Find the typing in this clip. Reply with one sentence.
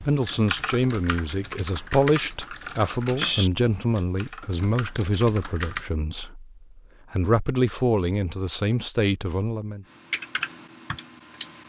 You can hear the typing from 0.0 to 5.9 s and from 9.9 to 11.6 s.